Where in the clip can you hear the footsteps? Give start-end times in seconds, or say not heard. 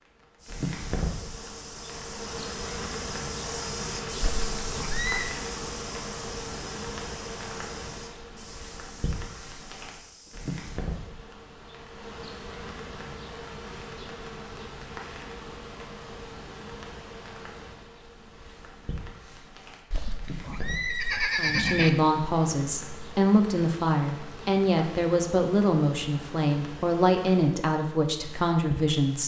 0.3-10.8.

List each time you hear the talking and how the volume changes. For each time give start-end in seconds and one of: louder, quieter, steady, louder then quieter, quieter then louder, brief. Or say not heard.
21.4-29.2 steady.